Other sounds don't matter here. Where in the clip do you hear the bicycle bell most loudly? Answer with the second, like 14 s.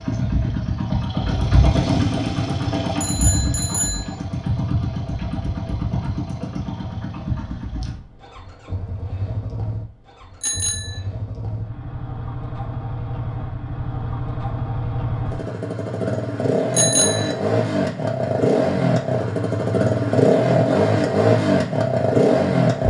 17 s.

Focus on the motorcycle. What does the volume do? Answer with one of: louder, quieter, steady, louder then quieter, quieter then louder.
quieter then louder.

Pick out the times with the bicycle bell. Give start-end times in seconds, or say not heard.
1.7-4.2, 10.4-11.0, 16.8-17.4.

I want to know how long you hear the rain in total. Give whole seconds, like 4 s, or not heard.
not heard.